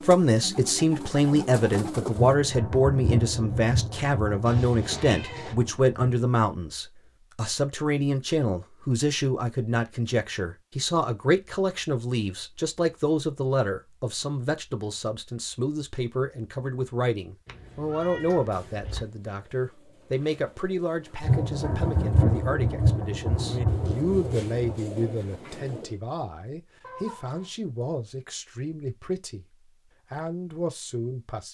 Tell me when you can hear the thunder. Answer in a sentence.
The thunder can be heard from 2.1 to 6.0 s and from 21.2 to 24.8 s.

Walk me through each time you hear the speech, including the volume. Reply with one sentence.
You can hear the speech from 0.1 to 31.4 s, getting quieter.